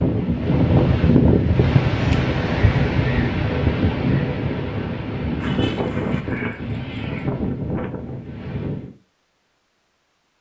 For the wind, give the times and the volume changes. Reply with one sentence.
You can hear the wind from 0.0 to 8.9 s, getting quieter.